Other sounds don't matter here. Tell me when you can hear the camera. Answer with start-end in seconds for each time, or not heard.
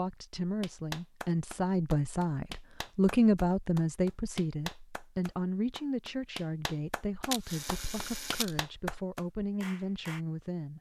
7.3-8.6.